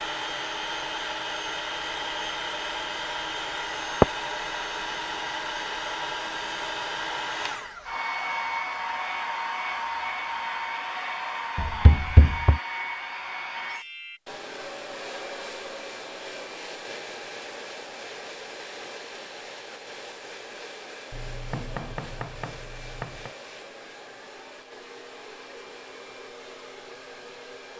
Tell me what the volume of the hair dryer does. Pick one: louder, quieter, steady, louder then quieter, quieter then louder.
quieter.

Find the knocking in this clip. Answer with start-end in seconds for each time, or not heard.
11.6-12.6, 21.1-23.3.